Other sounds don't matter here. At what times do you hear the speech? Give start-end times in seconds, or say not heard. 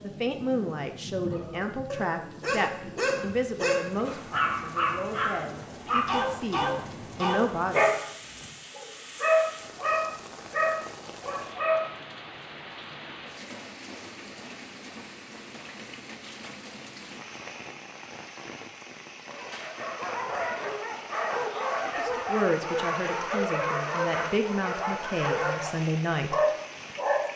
0.0-7.9, 21.8-26.4.